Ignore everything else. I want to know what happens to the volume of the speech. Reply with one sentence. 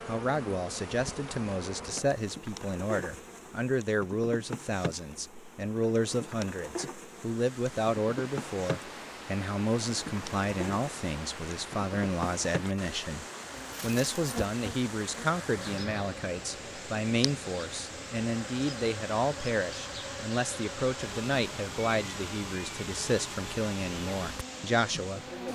The volume of the speech stays about the same.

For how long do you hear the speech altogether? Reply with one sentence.
You can hear the speech for 25 seconds altogether.